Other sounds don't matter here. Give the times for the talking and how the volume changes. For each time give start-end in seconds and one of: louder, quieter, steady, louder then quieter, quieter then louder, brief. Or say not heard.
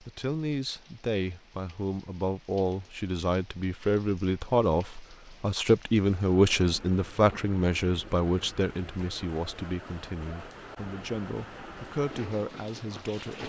0.0-13.4 louder then quieter.